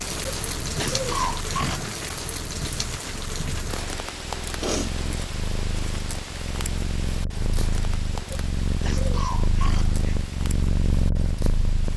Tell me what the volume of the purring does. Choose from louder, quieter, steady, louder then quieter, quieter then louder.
louder.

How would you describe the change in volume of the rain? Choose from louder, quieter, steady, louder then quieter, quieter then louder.
quieter.